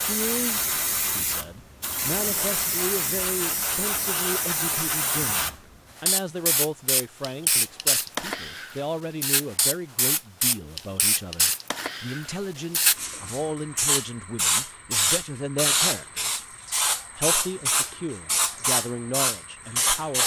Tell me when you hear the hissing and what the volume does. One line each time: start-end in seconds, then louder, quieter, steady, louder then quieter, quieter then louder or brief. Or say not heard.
0.0-20.2 steady.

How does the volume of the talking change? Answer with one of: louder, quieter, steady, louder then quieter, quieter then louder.
steady.